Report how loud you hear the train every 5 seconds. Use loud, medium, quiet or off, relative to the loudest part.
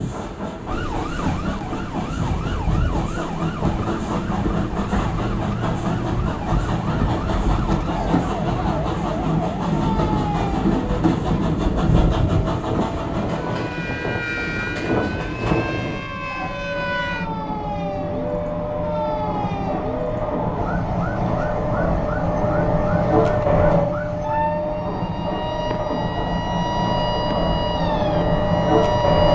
medium, loud, loud, medium, loud, loud.